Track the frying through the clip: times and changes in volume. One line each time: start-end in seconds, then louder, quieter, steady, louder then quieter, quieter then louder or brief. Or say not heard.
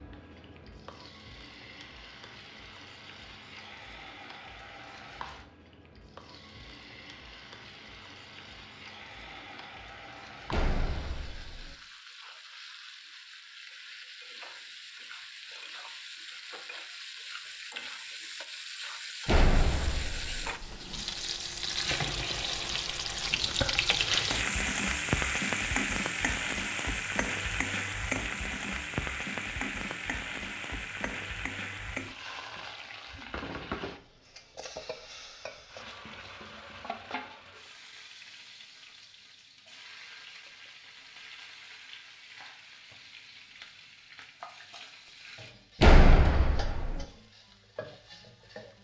0.0-48.7 louder then quieter.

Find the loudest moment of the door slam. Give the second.
46 s.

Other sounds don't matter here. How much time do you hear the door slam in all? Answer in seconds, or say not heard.
4 s.